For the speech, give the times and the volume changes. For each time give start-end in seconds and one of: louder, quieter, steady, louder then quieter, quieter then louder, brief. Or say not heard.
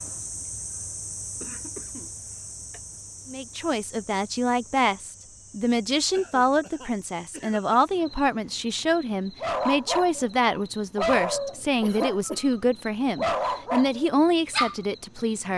3.2-15.5 steady.